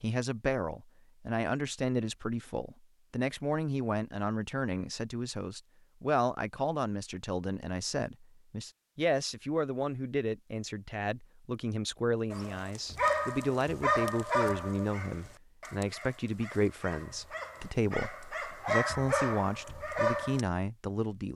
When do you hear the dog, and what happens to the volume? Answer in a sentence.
The dog can be heard from 12.3 to 20.4 s, getting quieter then louder.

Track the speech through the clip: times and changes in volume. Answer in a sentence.
The speech can be heard from 0.0 to 21.3 s, at a steady volume.